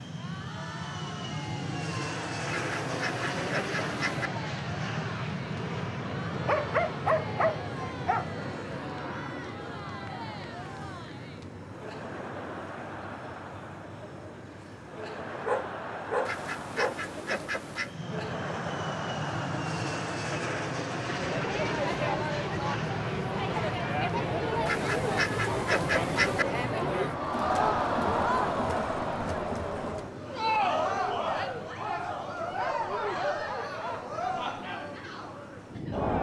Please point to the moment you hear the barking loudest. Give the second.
7 s.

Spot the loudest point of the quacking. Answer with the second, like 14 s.
26 s.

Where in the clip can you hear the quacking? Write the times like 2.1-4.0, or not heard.
2.5-4.3, 16.2-17.9, 24.6-26.4.